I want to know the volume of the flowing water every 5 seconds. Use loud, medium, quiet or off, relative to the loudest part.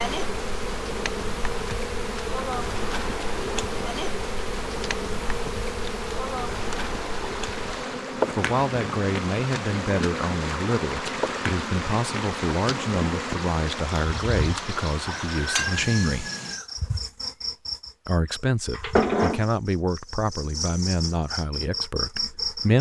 medium, loud, loud, loud, off.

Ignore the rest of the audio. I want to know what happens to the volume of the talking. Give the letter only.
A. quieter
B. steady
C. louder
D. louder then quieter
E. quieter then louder
B.